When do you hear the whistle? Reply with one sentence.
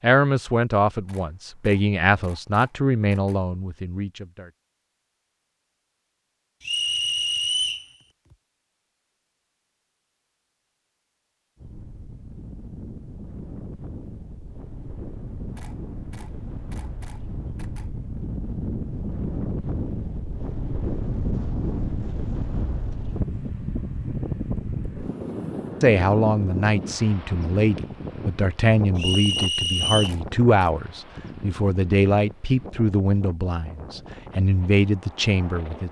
The whistle can be heard from 6.6 to 7.8 s and from 28.9 to 30.1 s.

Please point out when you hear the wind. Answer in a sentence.
The wind can be heard from 11.6 to 35.8 s.